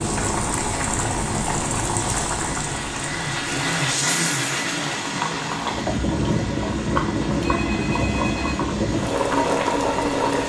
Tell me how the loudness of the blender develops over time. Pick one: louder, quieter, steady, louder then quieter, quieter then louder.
louder then quieter.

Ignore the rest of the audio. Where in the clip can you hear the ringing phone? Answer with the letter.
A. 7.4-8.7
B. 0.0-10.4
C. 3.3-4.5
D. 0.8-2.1
A.